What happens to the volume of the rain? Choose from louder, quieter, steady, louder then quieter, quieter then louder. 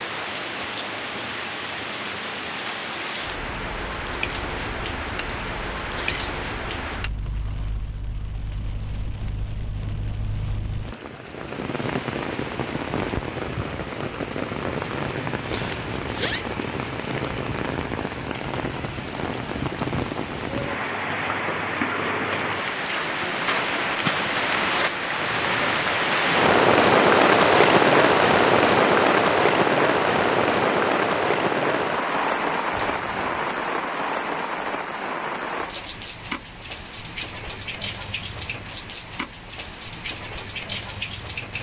louder then quieter.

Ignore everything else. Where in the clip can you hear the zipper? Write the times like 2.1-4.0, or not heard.
5.2-6.5, 15.4-16.4, 32.7-33.5.